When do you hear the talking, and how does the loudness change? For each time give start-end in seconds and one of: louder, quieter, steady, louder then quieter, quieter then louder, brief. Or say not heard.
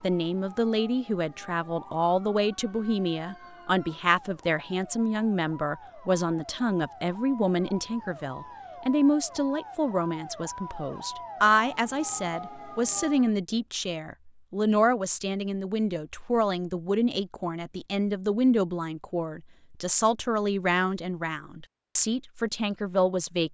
0.0-23.4 steady.